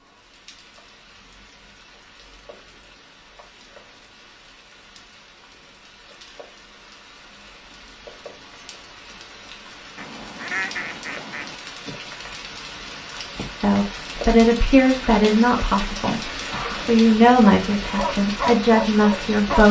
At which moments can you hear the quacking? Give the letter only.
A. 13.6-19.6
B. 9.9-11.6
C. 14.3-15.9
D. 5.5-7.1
B.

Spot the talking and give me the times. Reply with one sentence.
The talking can be heard from 13.6 to 19.6 s.